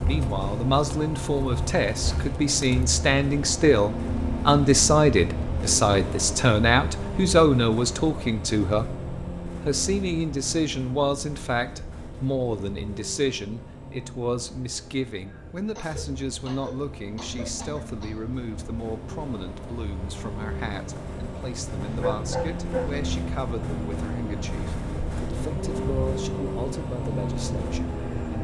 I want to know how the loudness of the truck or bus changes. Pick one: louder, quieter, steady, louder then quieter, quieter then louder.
quieter then louder.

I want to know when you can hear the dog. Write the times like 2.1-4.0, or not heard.
21.8-23.1.